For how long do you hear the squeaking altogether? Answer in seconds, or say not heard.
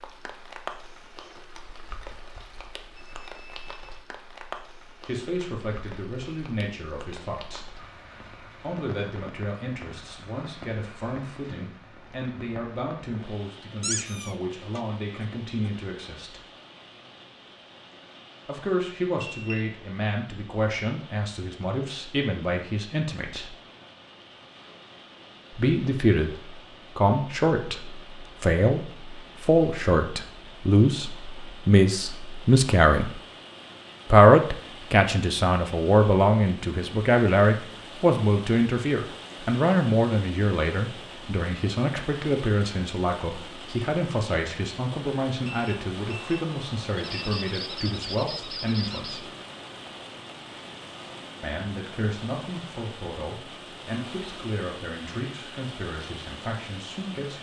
3 s.